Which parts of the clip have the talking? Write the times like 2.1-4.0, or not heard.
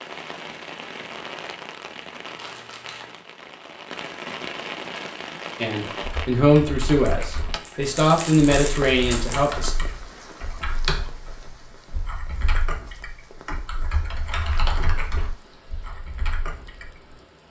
5.6-9.7.